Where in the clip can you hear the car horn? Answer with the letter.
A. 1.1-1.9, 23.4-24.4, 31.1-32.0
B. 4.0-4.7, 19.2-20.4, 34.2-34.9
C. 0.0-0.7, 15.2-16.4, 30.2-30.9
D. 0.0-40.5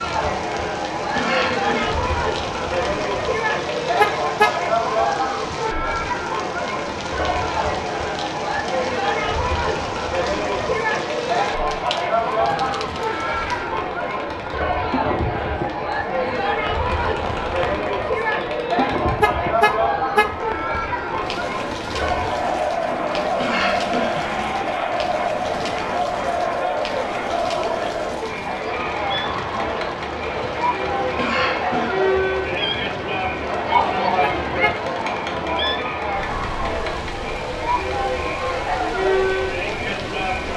B.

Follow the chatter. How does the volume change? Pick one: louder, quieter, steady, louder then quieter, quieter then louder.
steady.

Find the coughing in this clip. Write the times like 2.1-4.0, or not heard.
1.1-1.9, 23.4-24.4, 31.1-32.0.